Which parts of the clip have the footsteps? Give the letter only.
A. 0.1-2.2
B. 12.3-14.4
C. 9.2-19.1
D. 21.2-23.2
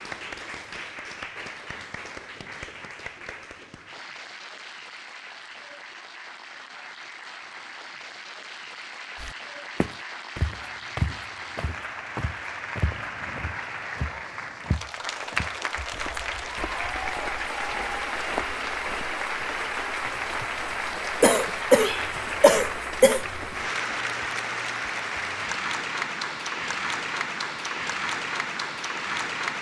C.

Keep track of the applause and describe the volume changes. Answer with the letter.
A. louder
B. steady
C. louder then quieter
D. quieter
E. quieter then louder
A.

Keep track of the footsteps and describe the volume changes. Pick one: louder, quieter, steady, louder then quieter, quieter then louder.
quieter then louder.